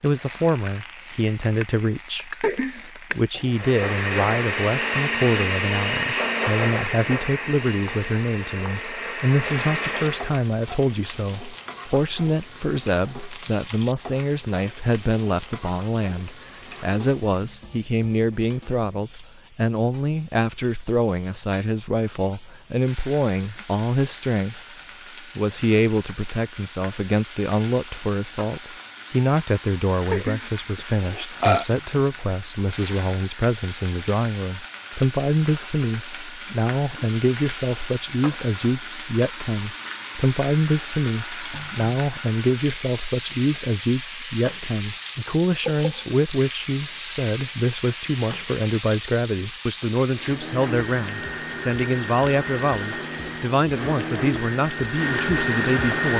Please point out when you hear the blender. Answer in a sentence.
You can hear the blender from 3.5 to 10.3 s and from 50.1 to 56.1 s.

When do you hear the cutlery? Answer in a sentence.
The cutlery can't be heard in this clip.